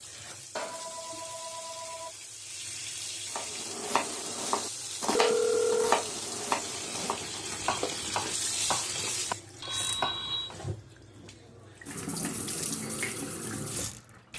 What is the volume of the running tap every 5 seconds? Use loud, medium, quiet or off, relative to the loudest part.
medium, loud, loud.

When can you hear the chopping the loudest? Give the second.
6 s.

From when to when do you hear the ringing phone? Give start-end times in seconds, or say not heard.
0.6-2.1, 5.2-6.0, 9.6-10.5.